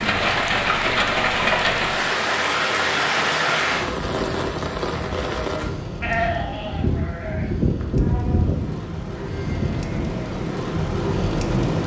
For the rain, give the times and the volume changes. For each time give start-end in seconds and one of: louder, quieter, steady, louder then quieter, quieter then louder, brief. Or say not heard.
0.0-11.8 quieter then louder.